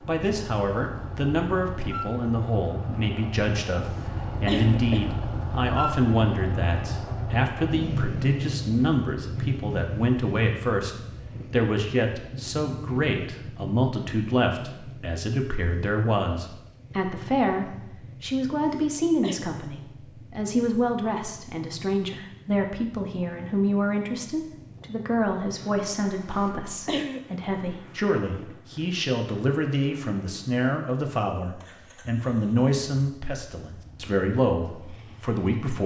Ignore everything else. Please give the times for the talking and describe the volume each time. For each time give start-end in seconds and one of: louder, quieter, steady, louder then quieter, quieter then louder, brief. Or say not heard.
0.1-35.8 steady.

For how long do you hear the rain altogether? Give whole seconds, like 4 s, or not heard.
not heard.